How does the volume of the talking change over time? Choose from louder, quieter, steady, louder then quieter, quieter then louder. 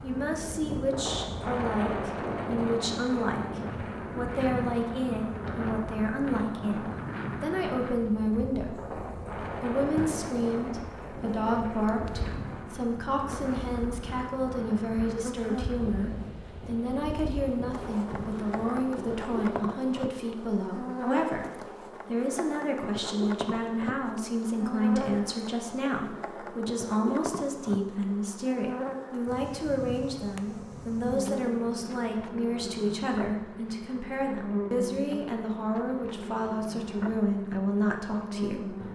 steady.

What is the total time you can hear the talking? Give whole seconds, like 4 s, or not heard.
39 s.